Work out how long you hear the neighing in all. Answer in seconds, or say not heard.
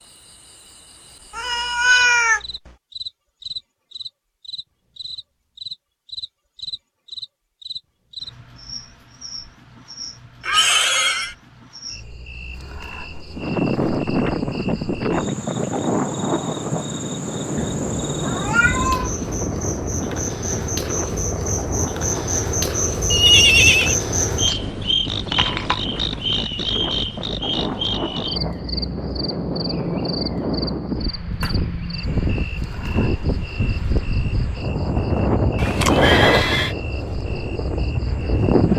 3 s.